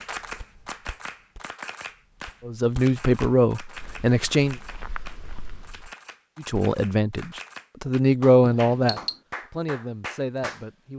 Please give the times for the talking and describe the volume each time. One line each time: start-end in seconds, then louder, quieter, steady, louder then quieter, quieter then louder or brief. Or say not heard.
2.5-4.5 brief
6.3-10.9 louder then quieter.